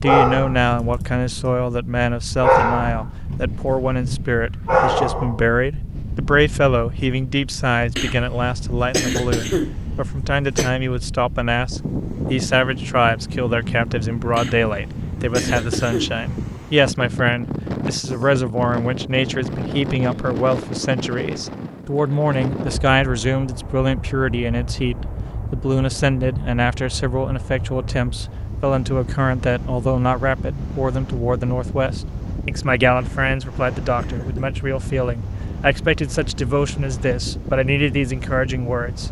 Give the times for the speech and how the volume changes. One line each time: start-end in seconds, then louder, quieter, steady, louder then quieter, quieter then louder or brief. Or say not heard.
0.0-39.0 steady.